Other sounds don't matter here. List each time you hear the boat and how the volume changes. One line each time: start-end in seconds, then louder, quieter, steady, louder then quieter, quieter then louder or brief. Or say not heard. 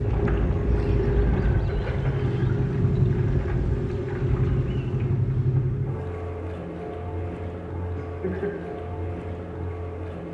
0.0-10.2 quieter.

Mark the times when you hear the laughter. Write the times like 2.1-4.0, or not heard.
0.9-2.2, 8.0-8.6.